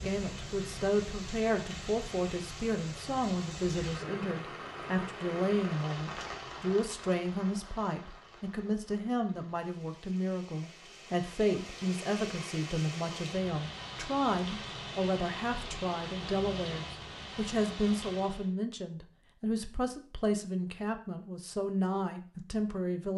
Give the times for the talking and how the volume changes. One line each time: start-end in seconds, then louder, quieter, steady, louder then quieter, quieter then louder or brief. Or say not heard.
0.0-23.1 steady.